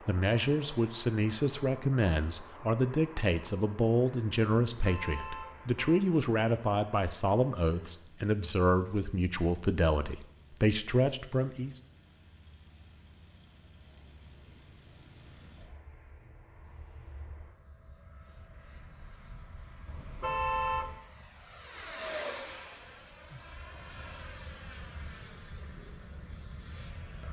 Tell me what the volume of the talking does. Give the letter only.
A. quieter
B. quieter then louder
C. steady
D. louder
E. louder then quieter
C.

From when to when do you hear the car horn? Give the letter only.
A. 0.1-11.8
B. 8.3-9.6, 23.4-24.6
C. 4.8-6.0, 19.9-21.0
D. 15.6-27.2
C.